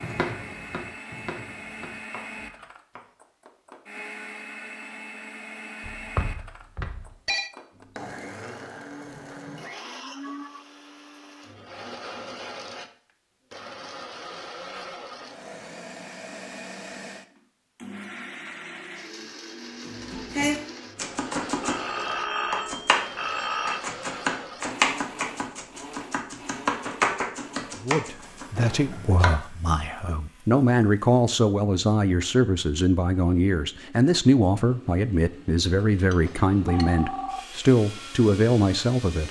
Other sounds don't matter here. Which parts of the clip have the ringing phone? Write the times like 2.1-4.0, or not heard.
5.8-7.5, 21.6-23.8, 36.0-37.4.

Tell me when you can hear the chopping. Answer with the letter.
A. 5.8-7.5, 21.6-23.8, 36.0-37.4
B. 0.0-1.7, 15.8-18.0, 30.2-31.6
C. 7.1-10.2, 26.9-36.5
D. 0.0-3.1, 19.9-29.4
D.